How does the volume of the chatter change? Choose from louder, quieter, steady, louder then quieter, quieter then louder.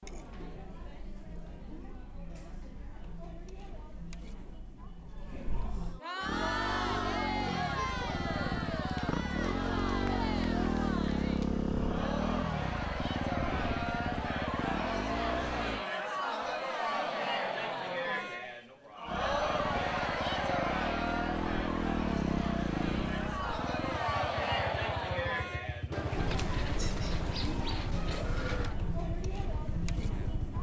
louder.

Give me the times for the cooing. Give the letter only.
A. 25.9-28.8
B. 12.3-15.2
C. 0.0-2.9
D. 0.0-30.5
A.